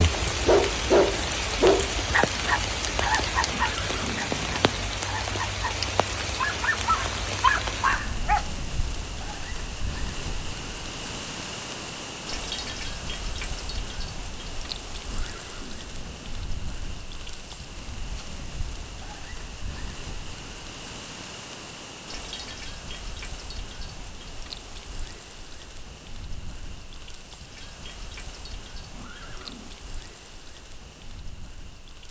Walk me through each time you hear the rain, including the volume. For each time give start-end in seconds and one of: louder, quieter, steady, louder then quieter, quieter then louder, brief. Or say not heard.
0.0-32.0 quieter.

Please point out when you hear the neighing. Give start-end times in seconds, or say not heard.
3.4-5.0, 15.0-16.2, 28.9-29.8.